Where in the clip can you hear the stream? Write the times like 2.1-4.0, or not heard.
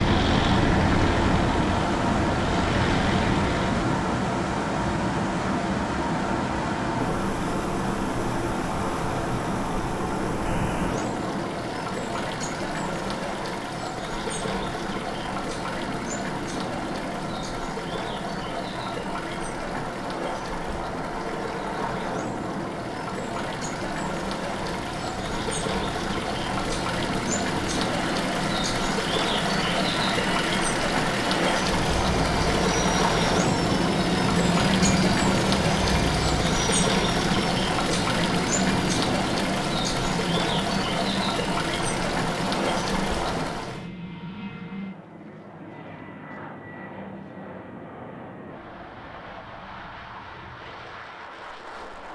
0.0-43.9.